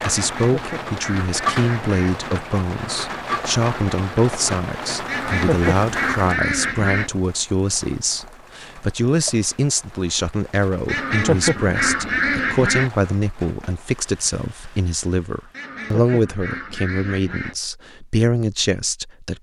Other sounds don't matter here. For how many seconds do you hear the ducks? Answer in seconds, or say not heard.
8 s.